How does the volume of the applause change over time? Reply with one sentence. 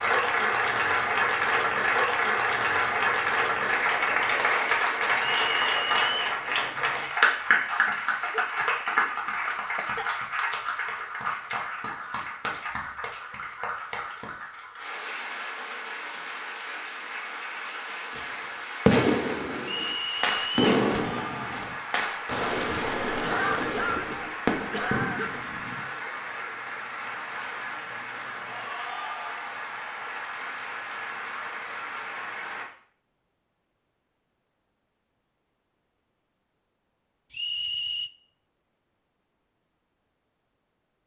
The loudness of the applause goes down.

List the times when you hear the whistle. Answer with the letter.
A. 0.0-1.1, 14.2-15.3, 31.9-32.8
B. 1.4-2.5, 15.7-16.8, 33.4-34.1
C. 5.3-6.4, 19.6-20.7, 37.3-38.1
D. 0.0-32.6
C.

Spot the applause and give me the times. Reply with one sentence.
You can hear the applause from 0.0 to 32.6 s.